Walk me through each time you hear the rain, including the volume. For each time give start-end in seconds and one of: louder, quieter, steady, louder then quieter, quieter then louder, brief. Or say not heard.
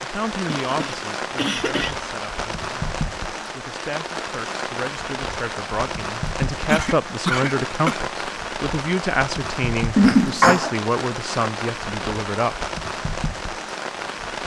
0.0-14.4 steady.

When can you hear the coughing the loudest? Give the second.
10 s.